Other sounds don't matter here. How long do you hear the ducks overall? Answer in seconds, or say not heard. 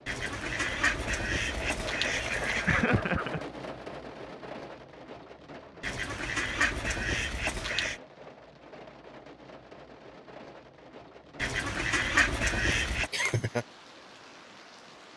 7 s.